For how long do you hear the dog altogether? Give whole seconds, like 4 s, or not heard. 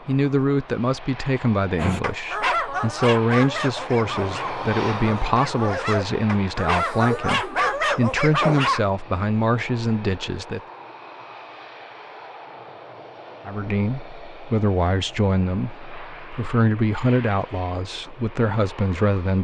7 s.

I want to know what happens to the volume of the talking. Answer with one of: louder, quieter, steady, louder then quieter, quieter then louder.
steady.